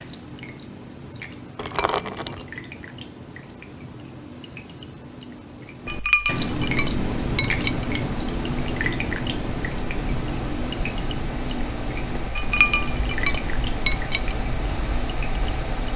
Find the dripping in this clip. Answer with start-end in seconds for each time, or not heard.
0.0-15.9.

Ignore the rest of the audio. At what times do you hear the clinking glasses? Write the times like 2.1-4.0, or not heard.
1.6-2.5, 5.8-7.8, 12.3-14.3.